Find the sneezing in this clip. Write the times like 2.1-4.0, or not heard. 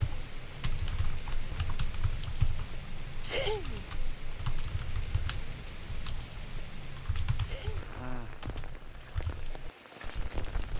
3.2-3.9, 7.4-7.8.